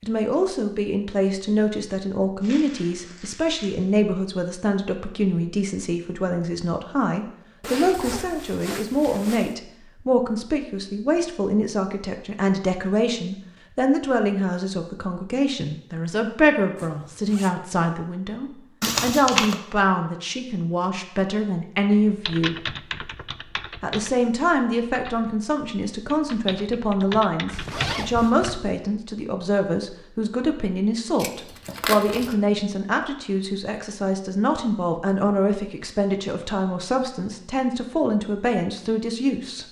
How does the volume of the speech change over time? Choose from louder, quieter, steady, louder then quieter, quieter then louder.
steady.